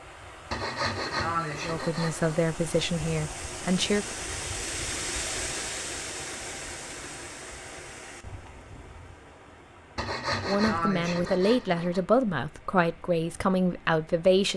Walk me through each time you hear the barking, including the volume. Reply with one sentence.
The barking can't be heard in this clip.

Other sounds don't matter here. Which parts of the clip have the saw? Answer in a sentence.
You can hear the saw from 0.5 to 2.4 s and from 9.9 to 12.0 s.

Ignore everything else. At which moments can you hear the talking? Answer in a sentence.
You can hear the talking from 1.6 to 4.0 s and from 10.4 to 14.5 s.